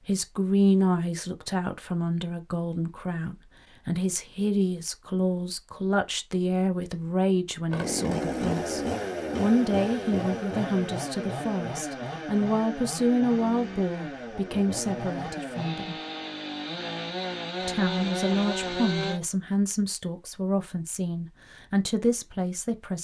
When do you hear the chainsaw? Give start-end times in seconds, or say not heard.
7.7-19.2.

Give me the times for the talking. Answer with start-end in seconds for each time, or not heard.
0.1-15.9, 17.6-22.9.